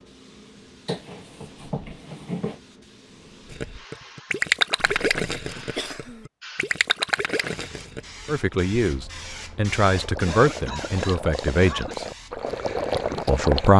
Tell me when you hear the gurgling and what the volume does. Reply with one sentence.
The gurgling can be heard from 3.5 to 13.7 s, getting quieter then louder.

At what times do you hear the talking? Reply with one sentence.
You can hear the talking from 8.2 to 12.1 s and from 13.2 to 13.7 s.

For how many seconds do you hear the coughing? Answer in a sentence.
You can hear the coughing for 5 seconds altogether.